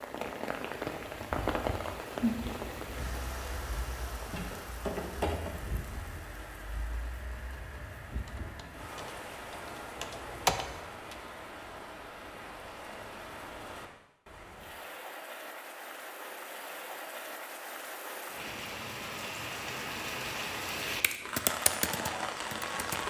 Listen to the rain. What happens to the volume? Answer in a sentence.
The loudness of the rain goes down, then up.